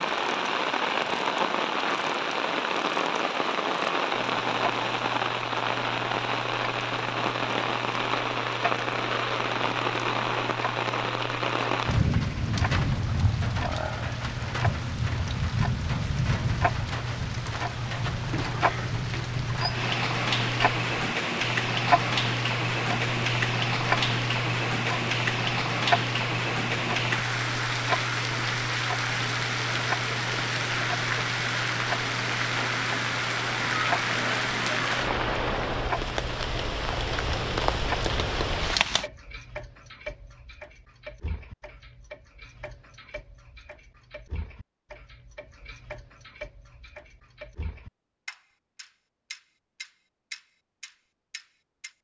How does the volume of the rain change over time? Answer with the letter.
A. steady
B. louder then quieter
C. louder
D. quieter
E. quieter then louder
A.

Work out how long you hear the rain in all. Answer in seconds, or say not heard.
39 s.